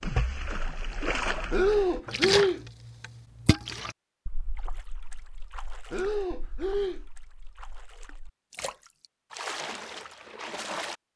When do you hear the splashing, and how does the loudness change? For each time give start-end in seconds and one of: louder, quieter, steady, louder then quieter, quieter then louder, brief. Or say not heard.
0.0-10.9 quieter then louder.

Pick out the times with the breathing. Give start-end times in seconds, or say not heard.
1.5-2.6, 5.9-7.0.